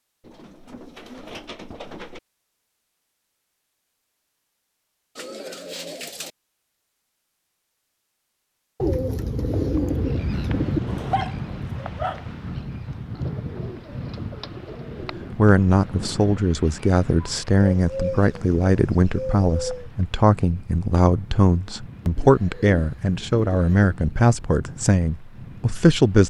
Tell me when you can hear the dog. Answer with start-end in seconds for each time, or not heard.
10.8-12.2.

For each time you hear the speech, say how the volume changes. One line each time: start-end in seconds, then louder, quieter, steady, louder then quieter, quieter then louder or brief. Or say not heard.
15.3-26.2 steady.